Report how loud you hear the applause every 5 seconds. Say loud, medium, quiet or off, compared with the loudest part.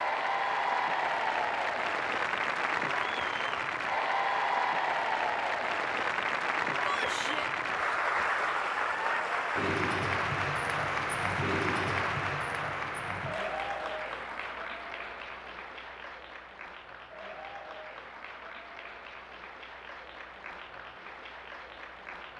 loud, loud, loud, quiet, quiet.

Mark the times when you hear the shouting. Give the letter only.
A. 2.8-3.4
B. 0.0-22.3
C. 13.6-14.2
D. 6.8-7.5
D.